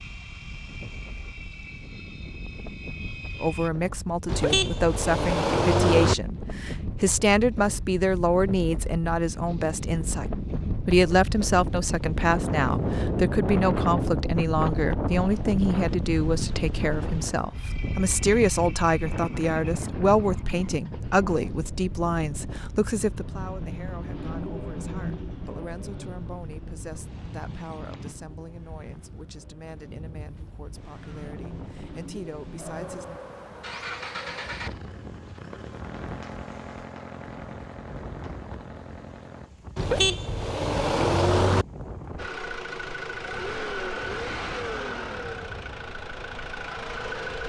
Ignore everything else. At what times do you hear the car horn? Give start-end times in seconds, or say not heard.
4.2-6.2, 39.8-41.6.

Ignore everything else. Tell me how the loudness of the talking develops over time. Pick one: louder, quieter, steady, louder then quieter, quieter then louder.
quieter.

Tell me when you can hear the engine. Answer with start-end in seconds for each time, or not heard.
0.0-3.7, 17.5-39.5, 42.1-47.4.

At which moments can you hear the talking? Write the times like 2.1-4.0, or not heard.
3.4-33.1.